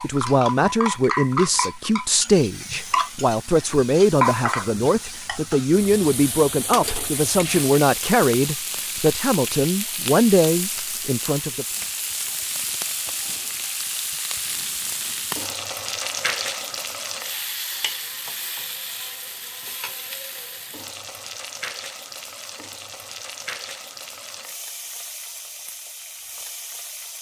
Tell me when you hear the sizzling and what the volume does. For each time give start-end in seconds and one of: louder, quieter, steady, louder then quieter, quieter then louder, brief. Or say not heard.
0.0-27.1 quieter.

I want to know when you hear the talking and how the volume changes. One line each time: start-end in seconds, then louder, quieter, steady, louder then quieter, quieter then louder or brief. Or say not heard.
0.0-11.7 steady.